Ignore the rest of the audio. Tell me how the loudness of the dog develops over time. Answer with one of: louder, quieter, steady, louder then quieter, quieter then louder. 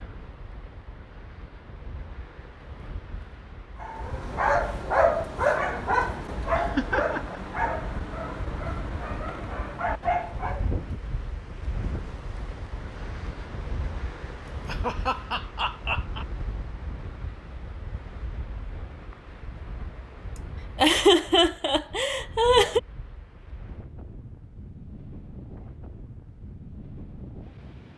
quieter then louder.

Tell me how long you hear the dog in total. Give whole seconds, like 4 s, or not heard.
7 s.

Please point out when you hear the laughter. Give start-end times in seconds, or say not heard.
5.9-7.4, 14.4-16.2, 20.8-22.8.